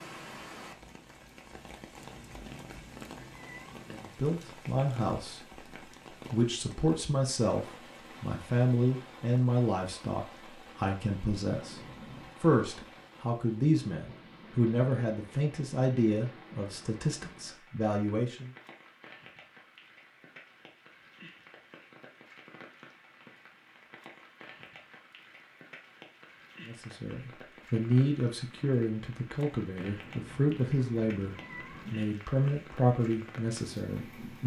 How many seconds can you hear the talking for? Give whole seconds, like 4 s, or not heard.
22 s.